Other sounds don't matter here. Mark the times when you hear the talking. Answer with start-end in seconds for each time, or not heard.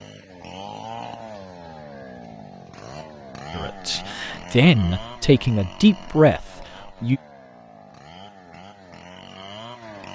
3.5-7.2.